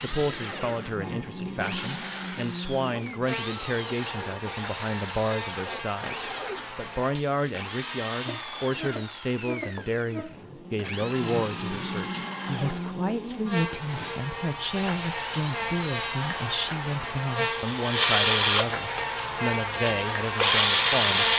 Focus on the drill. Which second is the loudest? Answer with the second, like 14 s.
21 s.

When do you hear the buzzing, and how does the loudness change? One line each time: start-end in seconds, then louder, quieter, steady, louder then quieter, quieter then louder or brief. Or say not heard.
0.0-21.3 louder.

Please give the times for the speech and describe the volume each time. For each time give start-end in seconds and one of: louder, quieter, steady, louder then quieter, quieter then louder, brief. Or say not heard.
0.0-21.3 steady.